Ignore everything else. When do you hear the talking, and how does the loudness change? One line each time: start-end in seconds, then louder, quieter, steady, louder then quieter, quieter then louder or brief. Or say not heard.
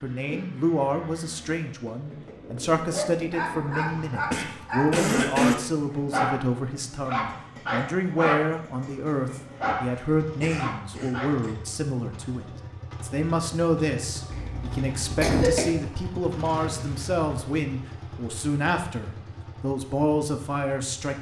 0.0-21.1 steady.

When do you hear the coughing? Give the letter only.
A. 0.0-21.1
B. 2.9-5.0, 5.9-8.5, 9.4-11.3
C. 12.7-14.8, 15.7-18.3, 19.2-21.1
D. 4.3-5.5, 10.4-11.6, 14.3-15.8
D.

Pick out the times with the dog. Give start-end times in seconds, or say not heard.
2.9-5.0, 5.9-8.5, 9.4-11.3.